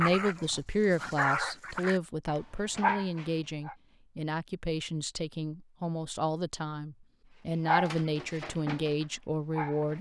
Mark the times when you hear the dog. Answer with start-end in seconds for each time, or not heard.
0.0-3.8, 7.7-9.9.